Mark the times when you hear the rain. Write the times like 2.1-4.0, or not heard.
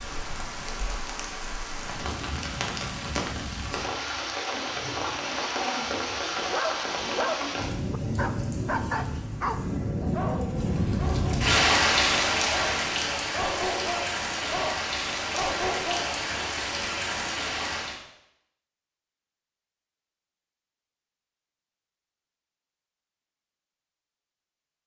0.0-18.0.